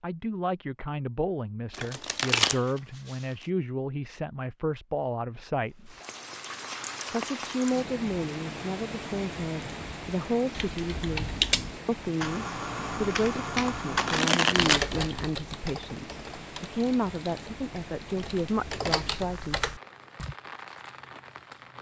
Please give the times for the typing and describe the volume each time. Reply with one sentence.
You can hear the typing from 10.6 to 20.4 s, getting quieter then louder.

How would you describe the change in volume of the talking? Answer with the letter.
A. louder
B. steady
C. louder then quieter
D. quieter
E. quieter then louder
B.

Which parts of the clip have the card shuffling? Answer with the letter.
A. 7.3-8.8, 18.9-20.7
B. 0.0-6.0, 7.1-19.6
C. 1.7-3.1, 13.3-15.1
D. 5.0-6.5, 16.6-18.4
C.